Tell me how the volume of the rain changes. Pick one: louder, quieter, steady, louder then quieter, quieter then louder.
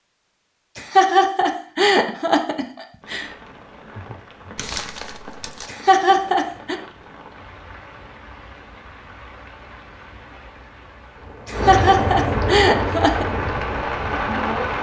louder.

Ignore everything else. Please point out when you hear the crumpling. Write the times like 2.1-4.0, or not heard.
4.5-5.7.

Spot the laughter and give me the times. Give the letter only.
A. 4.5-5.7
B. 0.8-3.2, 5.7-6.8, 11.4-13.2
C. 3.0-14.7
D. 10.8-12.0
B.